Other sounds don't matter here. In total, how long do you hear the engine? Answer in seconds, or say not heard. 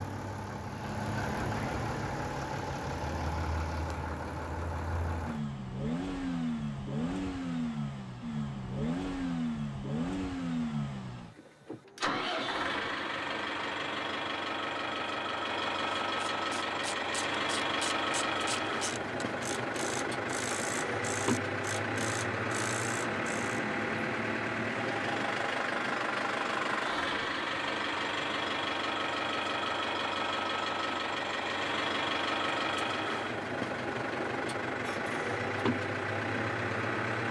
37 s.